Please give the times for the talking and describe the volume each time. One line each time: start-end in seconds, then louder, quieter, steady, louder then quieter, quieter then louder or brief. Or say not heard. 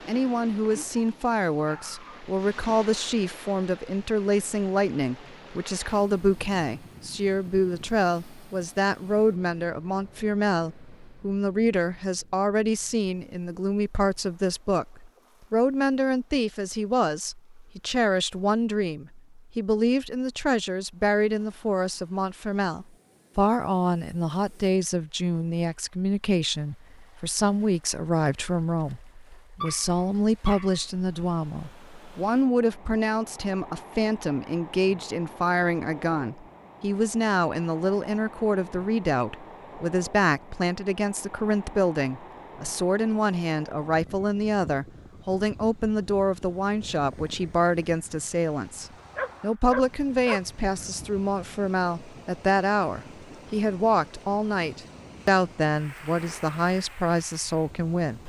0.1-58.2 steady.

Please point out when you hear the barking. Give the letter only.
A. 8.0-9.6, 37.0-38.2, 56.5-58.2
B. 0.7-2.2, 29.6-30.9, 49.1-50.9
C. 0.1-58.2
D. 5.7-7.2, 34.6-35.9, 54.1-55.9
B.